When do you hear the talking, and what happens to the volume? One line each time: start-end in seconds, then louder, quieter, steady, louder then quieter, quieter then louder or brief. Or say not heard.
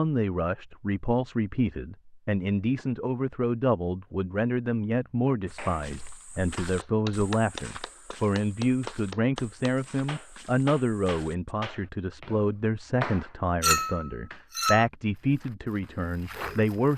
0.0-16.9 steady.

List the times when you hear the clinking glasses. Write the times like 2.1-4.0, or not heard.
13.6-14.8.